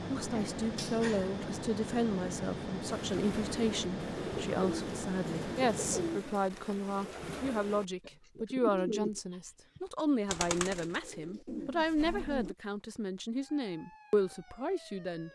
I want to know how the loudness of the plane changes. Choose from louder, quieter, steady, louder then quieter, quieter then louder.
steady.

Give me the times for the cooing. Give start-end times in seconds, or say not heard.
2.9-12.6.